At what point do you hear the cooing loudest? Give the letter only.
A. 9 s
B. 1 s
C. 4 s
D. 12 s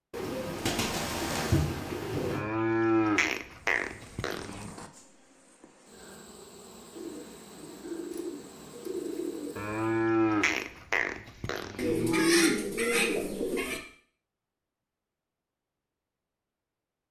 D.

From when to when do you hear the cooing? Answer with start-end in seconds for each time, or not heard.
0.1-2.4, 7.0-9.8, 11.8-13.8.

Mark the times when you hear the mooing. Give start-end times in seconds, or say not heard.
2.3-4.7, 9.6-12.3.